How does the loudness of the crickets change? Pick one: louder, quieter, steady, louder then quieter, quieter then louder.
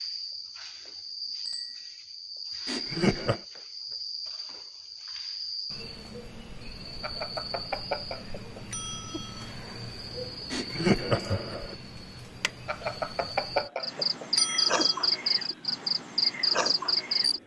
louder.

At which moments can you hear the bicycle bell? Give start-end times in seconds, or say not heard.
1.4-1.9, 7.0-9.5, 12.7-15.2.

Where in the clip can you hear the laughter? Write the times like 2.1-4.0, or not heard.
2.6-3.4, 10.5-11.8.